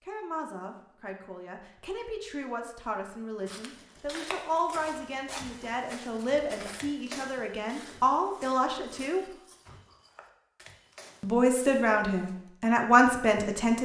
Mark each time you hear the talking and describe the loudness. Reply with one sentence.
You can hear the talking from 0.0 to 9.2 s, getting louder; and briefly from 11.2 to 13.8 s.